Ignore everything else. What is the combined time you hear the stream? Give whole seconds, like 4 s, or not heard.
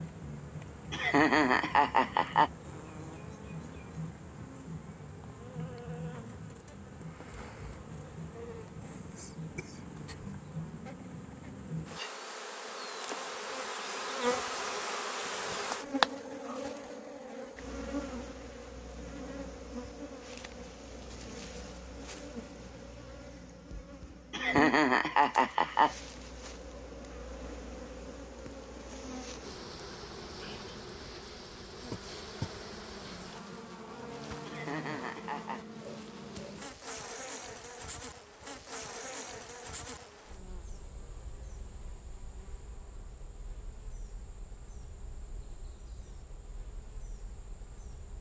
not heard.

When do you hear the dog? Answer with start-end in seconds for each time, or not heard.
not heard.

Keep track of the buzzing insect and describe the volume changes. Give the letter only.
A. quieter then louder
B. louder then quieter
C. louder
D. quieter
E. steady
B.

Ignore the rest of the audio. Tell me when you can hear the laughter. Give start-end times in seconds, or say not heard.
0.9-2.5, 24.3-25.9, 34.5-35.6.